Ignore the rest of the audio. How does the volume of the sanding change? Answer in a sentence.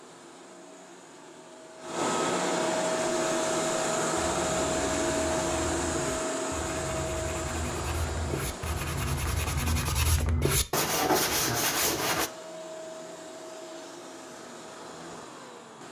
The loudness of the sanding goes up.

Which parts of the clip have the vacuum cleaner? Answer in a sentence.
You can hear the vacuum cleaner from 0.0 to 9.6 s and from 12.1 to 15.8 s.